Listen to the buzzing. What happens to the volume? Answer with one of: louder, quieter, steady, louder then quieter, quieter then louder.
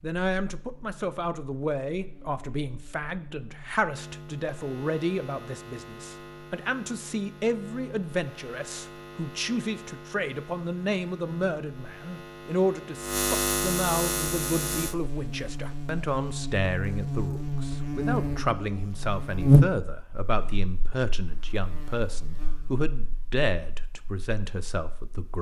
louder.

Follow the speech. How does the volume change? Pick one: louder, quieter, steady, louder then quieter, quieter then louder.
steady.